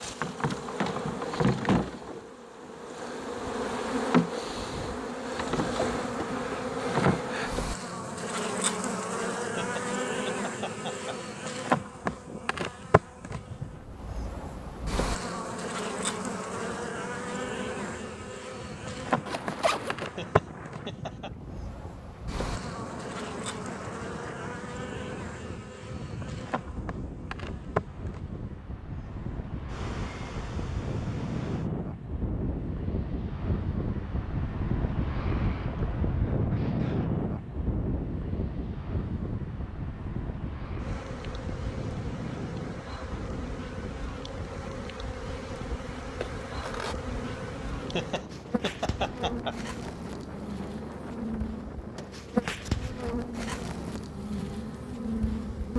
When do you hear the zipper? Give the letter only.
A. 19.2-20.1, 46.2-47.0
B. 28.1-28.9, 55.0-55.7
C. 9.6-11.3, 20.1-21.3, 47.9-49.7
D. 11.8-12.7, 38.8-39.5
A.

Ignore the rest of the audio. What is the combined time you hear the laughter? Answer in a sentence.
You can hear the laughter for 5 seconds altogether.